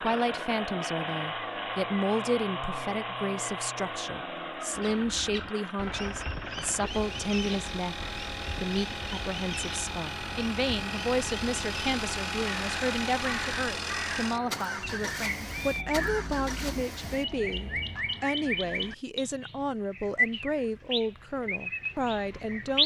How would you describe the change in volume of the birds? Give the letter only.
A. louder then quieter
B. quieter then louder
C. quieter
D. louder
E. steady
D.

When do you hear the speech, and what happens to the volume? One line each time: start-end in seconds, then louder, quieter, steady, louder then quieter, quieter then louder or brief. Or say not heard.
0.0-22.8 steady.